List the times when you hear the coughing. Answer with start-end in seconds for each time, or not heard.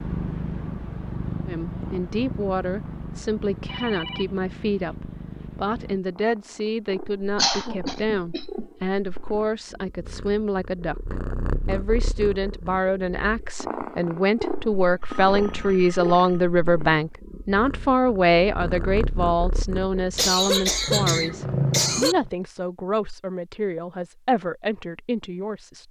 7.3-8.7, 20.1-22.1.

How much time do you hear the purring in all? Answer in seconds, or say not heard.
22 s.